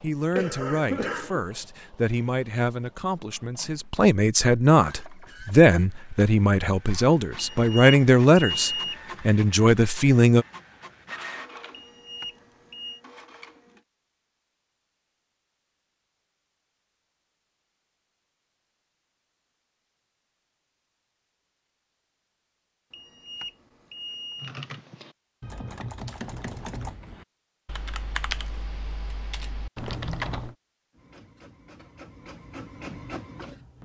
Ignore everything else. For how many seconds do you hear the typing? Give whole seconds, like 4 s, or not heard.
6 s.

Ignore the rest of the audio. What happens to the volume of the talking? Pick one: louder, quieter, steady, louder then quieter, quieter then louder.
louder.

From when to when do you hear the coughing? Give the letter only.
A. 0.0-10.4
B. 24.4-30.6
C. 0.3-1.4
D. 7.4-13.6
C.